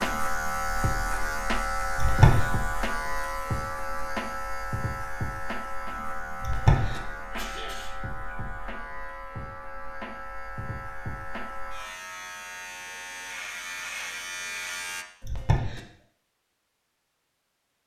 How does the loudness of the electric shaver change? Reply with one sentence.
The loudness of the electric shaver goes down.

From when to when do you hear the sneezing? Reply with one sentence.
You can hear the sneezing from 1.9 to 2.5 s, from 6.4 to 7.8 s and from 15.2 to 15.8 s.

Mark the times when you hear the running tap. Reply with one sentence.
The running tap can't be heard in this clip.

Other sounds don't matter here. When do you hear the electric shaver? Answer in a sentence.
You can hear the electric shaver from 0.0 to 15.1 s.